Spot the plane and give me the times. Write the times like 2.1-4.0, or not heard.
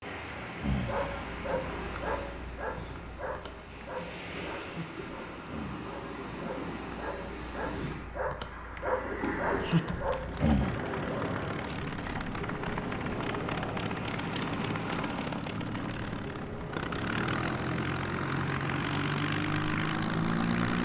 9.9-20.7.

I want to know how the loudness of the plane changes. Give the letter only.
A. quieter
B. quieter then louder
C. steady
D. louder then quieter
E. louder
E.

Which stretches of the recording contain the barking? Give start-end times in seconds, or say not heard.
0.6-10.8.